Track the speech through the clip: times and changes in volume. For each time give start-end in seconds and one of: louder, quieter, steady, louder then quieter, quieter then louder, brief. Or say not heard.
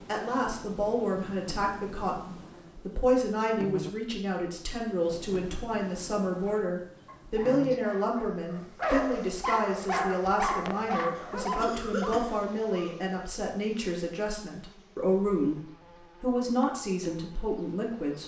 0.1-18.2 steady.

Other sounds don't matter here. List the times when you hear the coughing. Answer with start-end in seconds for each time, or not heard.
11.2-12.4.